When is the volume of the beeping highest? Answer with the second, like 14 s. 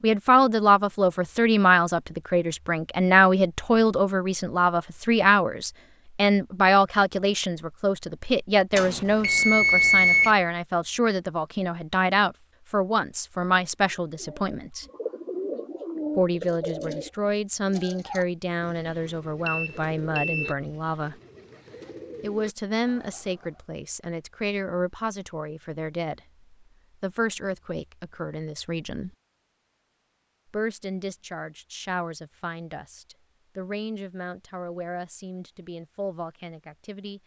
10 s.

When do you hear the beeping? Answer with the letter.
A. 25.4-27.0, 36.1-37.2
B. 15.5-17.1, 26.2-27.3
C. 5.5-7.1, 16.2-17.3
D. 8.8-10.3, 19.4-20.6
D.